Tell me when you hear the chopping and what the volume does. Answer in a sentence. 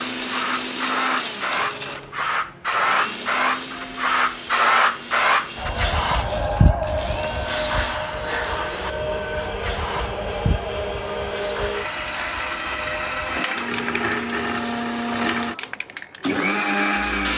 The chopping can't be heard in this clip.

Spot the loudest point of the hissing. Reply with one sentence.
The loudest moment of the hissing is at 5 seconds.